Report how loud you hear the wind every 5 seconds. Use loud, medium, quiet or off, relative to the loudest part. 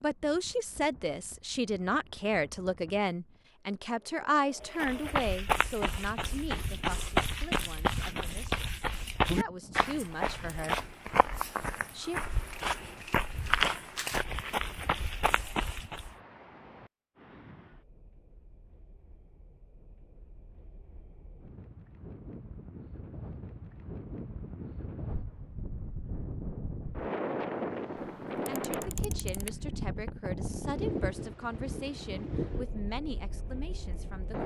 quiet, quiet, quiet, quiet, medium, loud, loud.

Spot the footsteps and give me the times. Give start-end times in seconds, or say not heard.
4.6-16.1.